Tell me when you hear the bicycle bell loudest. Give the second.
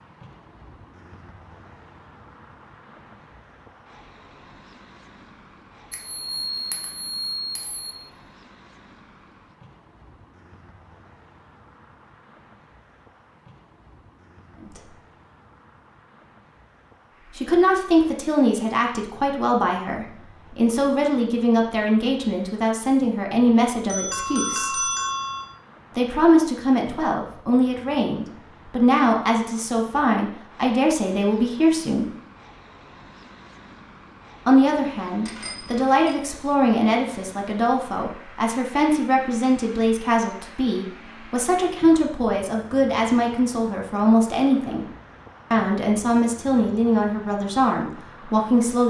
25 s.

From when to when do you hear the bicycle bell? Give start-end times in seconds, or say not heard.
5.9-7.9, 23.4-25.4, 35.2-36.1.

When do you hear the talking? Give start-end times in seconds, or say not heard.
17.3-24.9, 25.9-32.1, 34.5-44.9, 45.5-48.8.